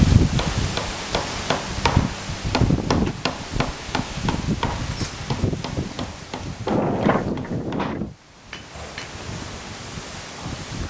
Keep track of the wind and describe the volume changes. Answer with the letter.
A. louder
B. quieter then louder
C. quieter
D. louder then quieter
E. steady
C.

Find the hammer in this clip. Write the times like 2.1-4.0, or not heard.
0.3-9.2.